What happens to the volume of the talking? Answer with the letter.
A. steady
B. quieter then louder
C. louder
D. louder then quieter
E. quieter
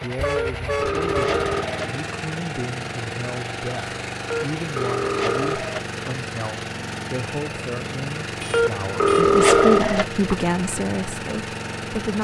C.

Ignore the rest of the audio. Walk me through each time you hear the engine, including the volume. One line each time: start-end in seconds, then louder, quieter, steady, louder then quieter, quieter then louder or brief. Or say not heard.
0.0-12.1 steady.